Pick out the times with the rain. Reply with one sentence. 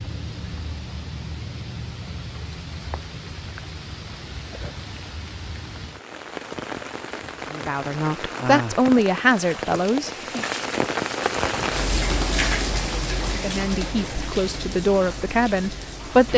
The rain can be heard from 0.0 to 16.3 s.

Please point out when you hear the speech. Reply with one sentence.
The speech can be heard from 7.5 to 10.4 s and from 13.3 to 16.3 s.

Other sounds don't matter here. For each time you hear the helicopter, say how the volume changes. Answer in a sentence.
You can't hear the helicopter here.